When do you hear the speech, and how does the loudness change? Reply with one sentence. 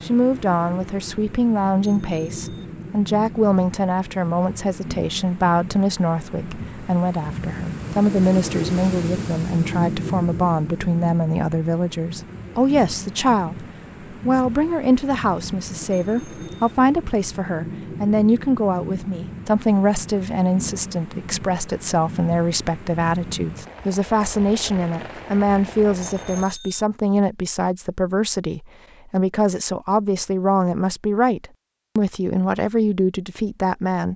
The speech can be heard from 0.0 to 34.1 s, at a steady volume.